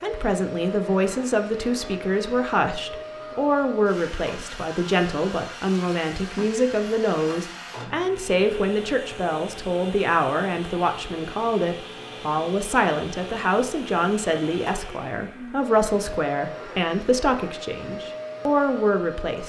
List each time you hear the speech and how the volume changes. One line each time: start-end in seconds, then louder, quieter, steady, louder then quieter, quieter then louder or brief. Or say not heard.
0.0-19.4 steady.